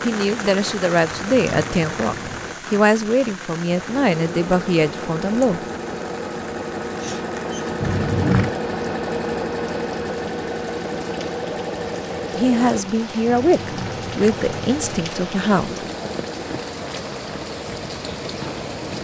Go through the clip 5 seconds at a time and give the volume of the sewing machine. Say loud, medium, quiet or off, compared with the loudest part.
medium, loud, loud, medium.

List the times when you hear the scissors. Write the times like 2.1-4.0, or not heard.
1.1-2.5, 7.8-8.6, 13.2-15.1.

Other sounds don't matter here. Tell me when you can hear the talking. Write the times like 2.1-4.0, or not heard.
0.0-5.6, 12.3-15.8.